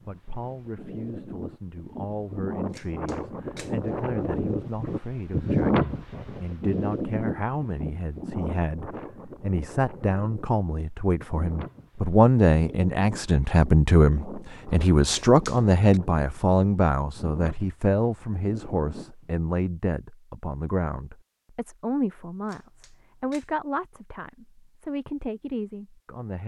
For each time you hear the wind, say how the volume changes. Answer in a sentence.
You can hear the wind from 0.0 to 19.4 s, getting louder then quieter.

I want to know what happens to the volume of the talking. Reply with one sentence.
The loudness of the talking goes up, then down.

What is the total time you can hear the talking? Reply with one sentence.
The talking can be heard for 26 seconds in total.